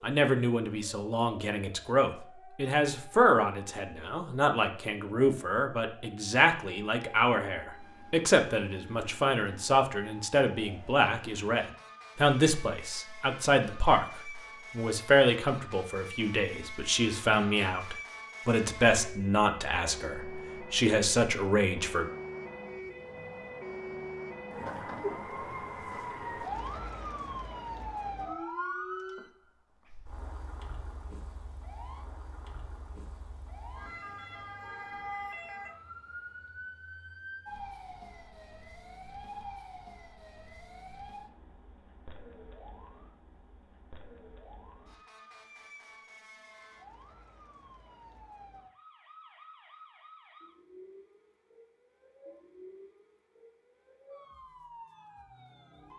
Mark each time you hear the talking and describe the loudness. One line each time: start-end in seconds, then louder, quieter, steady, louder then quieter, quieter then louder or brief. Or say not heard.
0.0-22.1 steady.